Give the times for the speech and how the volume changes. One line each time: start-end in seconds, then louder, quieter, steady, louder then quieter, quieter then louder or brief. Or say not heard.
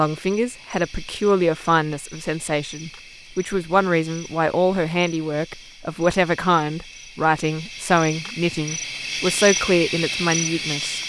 0.0-11.0 steady.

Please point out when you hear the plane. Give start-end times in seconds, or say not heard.
not heard.